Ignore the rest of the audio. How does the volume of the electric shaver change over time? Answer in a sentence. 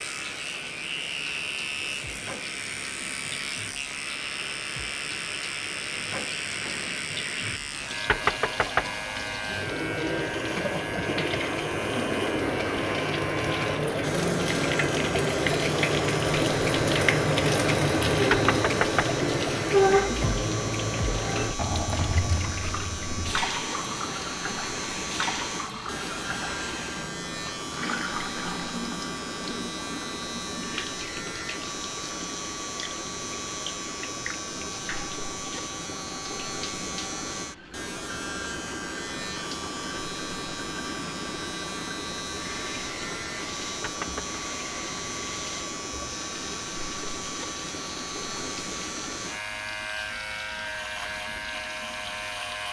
The volume of the electric shaver stays about the same.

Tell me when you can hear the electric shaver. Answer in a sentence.
The electric shaver can be heard from 0.0 to 52.6 s.